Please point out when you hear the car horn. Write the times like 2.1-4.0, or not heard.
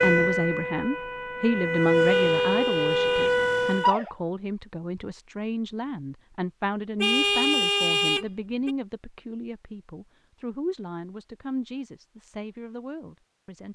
2.0-3.4, 7.0-8.8.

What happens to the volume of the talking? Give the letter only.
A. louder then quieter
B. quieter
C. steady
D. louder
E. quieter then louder
B.